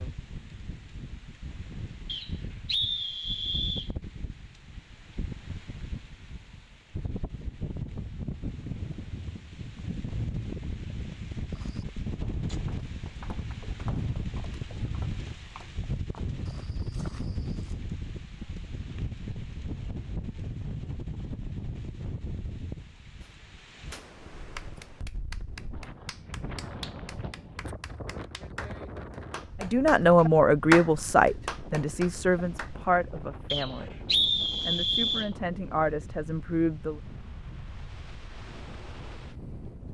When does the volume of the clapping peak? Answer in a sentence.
The loudest moment of the clapping is at 31 seconds.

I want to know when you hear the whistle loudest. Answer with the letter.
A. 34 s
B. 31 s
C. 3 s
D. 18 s
A.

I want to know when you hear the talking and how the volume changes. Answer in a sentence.
The talking can be heard from 29.6 to 34.0 s, getting quieter; and briefly from 34.6 to 37.0 s.